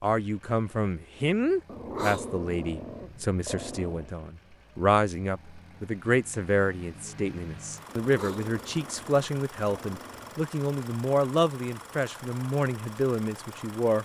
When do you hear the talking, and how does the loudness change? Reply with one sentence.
You can hear the talking from 0.0 to 14.0 s, at a steady volume.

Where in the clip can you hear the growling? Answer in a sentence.
You can hear the growling from 1.6 to 4.1 s and from 7.8 to 10.4 s.